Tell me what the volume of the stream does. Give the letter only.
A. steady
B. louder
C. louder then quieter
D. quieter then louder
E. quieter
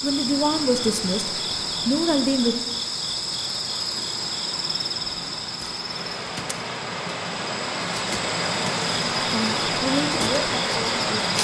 B.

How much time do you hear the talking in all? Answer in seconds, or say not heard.
5 s.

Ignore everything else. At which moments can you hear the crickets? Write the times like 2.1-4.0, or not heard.
0.0-11.3.